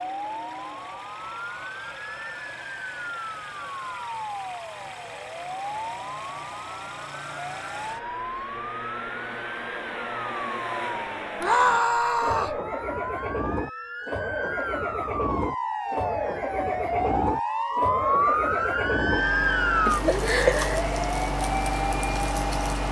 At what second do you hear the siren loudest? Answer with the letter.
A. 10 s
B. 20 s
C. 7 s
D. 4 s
B.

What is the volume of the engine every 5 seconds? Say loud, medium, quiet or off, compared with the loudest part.
quiet, medium, loud, loud, loud.